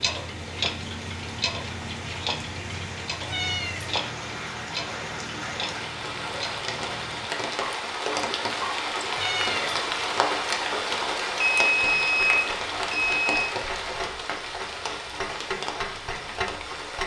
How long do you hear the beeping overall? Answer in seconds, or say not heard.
2 s.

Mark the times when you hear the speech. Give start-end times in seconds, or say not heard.
not heard.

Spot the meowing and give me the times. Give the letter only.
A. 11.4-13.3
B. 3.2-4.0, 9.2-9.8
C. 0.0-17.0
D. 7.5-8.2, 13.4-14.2
B.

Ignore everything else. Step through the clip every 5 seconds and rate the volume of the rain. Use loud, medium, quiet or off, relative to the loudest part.
medium, loud, loud, medium.